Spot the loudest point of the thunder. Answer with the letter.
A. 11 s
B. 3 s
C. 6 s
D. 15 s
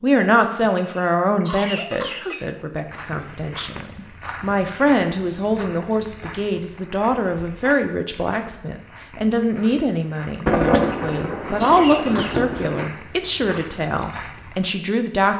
A.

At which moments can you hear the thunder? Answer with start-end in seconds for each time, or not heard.
10.4-12.9.